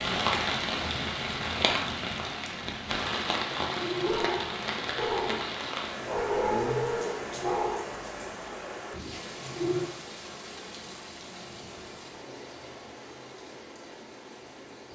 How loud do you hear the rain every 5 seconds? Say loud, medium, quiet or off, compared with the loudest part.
loud, medium, quiet.